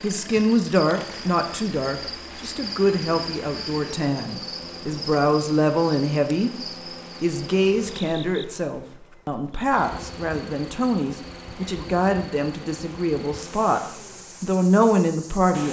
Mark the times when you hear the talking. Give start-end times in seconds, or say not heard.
0.0-6.5, 7.2-13.8, 14.4-15.6.